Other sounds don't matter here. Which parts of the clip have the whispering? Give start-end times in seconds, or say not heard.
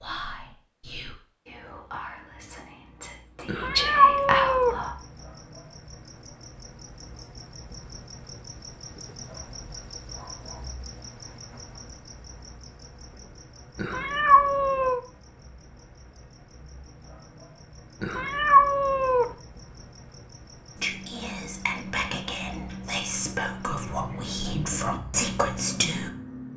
0.0-4.9, 20.8-26.1.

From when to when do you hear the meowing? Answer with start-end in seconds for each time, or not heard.
3.5-4.8, 13.8-15.0, 18.0-19.2.